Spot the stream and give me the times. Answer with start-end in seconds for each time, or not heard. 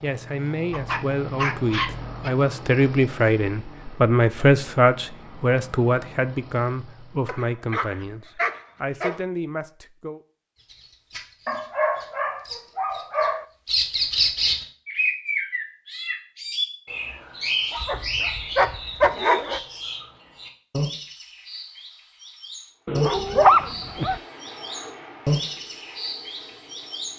not heard.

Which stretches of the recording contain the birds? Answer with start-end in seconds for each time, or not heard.
10.7-27.1.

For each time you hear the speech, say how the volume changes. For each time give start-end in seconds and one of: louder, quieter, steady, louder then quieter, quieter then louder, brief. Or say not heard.
0.0-10.2 louder then quieter.